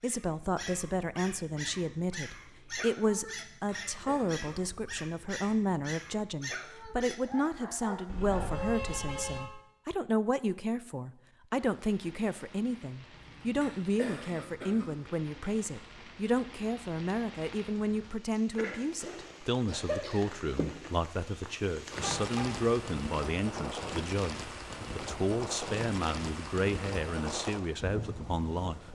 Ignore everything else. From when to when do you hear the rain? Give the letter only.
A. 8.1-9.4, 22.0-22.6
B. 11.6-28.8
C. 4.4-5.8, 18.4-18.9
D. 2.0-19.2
B.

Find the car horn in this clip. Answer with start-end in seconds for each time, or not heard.
8.1-9.4, 22.0-22.6.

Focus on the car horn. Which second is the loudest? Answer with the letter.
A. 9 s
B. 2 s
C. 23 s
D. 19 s
A.